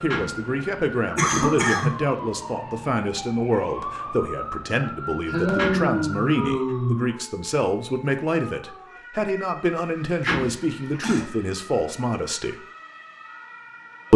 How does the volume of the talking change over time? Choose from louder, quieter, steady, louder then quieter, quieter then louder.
steady.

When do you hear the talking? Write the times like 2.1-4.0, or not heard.
0.0-12.6.